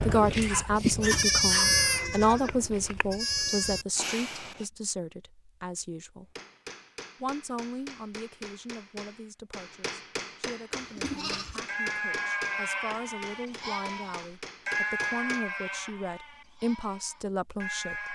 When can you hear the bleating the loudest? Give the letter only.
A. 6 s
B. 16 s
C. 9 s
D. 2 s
D.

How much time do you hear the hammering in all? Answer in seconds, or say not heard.
9 s.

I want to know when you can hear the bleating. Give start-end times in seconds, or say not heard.
0.0-4.7, 10.8-18.1.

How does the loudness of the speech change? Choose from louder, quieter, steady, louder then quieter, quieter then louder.
quieter then louder.